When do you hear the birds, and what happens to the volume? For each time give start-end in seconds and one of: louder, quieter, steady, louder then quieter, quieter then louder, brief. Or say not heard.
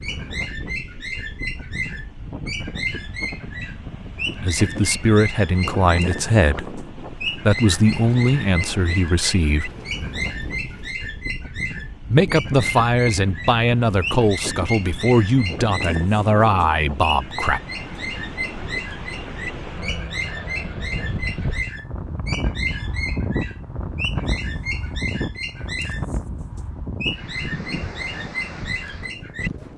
0.0-29.5 steady.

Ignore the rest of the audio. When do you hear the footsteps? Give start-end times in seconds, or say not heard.
not heard.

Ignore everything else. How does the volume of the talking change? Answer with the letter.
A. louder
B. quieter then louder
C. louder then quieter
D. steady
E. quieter
D.